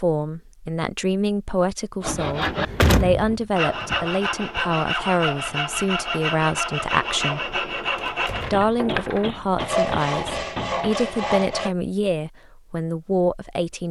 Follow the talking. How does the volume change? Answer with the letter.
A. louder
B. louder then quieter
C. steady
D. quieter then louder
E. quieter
C.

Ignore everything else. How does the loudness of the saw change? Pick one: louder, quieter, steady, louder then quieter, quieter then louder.
steady.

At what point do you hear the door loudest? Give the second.
3 s.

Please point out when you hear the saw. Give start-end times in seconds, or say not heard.
2.0-11.8.